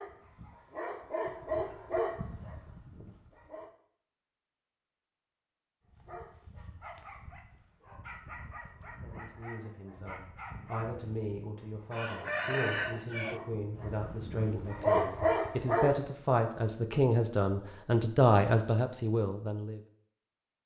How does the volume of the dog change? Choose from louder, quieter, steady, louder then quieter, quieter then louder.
quieter then louder.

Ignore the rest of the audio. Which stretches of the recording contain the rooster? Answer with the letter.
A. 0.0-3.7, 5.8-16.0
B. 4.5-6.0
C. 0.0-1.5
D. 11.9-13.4
D.